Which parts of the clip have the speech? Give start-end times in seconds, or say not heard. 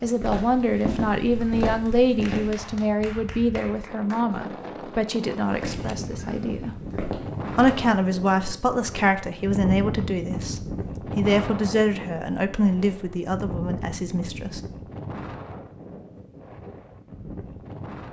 0.0-6.8, 7.5-14.6.